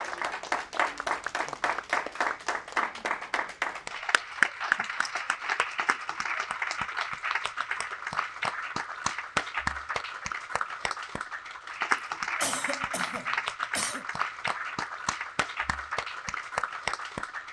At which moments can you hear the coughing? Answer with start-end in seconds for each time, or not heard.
12.4-14.1.